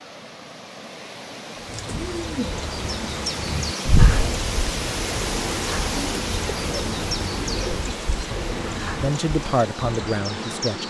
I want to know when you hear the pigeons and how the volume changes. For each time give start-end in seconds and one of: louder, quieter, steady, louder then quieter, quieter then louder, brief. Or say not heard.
1.6-9.2 steady.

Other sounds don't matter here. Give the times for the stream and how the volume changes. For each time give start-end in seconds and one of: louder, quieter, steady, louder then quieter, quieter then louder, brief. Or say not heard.
0.0-10.8 louder then quieter.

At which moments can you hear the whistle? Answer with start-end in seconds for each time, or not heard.
not heard.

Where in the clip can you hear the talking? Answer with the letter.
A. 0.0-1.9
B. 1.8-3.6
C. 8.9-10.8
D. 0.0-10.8
C.